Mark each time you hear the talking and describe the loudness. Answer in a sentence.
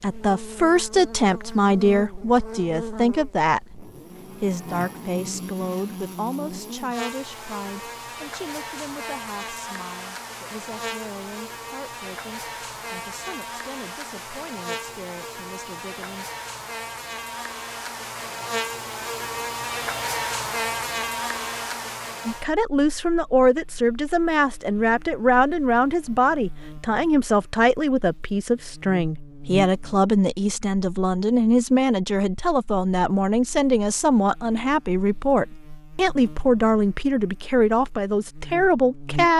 The talking can be heard from 0.0 to 16.3 s, getting quieter; and from 22.2 to 39.3 s, at a steady volume.